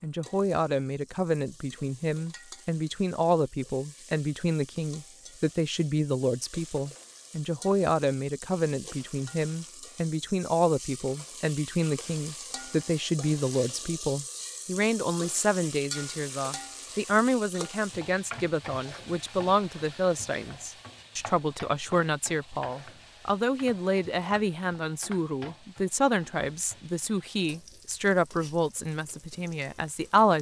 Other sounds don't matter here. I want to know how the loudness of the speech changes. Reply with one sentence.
The volume of the speech stays about the same.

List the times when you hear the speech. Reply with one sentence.
The speech can be heard from 0.0 to 30.3 s.